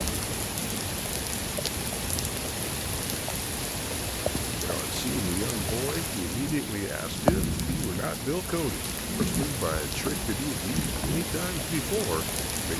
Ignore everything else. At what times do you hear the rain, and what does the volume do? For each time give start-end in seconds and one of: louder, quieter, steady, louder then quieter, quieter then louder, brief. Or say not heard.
0.0-12.7 steady.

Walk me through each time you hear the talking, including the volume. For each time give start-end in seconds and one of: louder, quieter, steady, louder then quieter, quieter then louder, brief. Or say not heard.
4.6-12.7 steady.